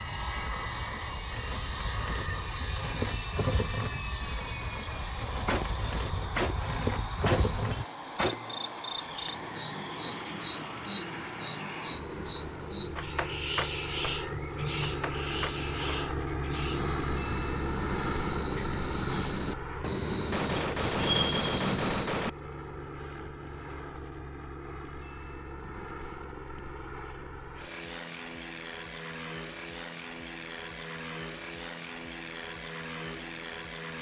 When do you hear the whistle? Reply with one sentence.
You can't hear the whistle here.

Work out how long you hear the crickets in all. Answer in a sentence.
You can hear the crickets for 22 seconds altogether.